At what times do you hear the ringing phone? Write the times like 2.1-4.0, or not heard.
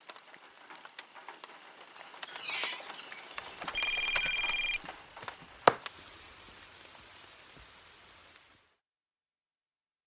3.4-5.8.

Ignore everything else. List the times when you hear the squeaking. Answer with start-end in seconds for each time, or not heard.
1.9-3.1.